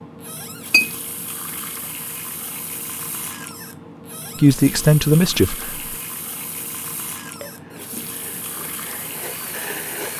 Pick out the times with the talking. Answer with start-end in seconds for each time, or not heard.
4.3-6.0.